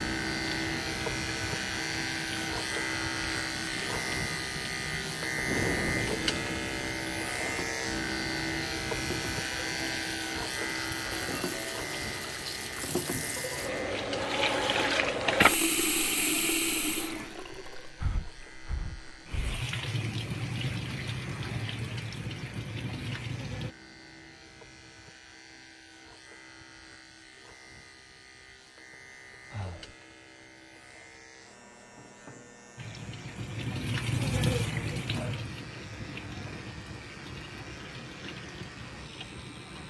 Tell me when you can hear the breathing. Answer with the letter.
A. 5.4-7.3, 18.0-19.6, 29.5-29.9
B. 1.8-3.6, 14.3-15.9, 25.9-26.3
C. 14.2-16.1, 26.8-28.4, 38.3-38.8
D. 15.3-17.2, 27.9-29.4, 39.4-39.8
A.